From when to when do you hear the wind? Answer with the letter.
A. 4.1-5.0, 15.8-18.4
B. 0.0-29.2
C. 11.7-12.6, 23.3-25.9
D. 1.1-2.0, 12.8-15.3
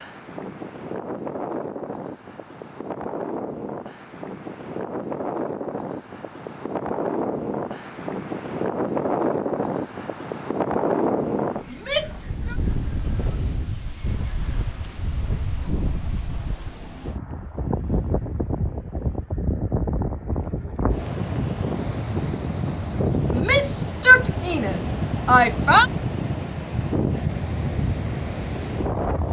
B.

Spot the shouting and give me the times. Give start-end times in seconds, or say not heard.
11.7-12.6, 23.3-25.9.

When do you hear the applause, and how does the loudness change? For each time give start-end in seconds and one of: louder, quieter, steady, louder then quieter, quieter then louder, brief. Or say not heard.
not heard.